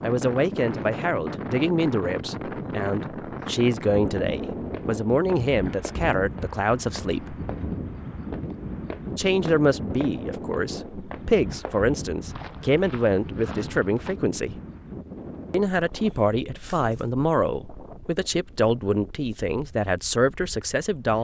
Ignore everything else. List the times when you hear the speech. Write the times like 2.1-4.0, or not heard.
0.0-7.3, 9.2-14.6, 15.5-21.1.